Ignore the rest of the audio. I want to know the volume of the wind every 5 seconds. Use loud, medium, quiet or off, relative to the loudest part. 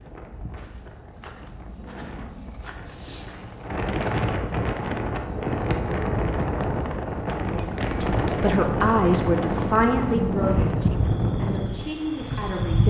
medium, loud, loud.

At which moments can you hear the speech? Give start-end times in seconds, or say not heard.
8.0-12.8.